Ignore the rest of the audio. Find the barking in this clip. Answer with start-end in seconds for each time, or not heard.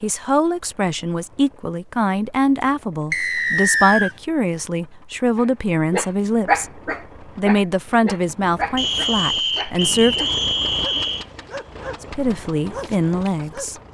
5.3-13.7.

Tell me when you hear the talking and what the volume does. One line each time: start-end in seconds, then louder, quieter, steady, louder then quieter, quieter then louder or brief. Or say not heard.
0.0-10.3 steady
12.0-13.8 brief.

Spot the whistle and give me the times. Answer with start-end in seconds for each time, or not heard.
3.1-4.2, 8.8-11.2.